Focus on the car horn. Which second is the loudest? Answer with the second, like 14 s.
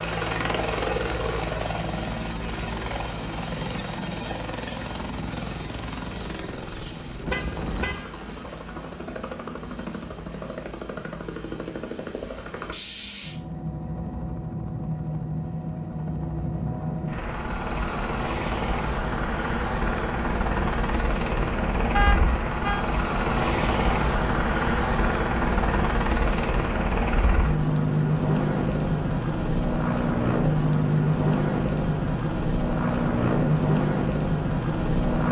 22 s.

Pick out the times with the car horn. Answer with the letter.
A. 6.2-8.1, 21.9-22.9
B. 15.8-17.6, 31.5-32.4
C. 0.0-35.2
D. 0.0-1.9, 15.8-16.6
A.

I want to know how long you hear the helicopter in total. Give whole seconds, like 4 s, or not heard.
35 s.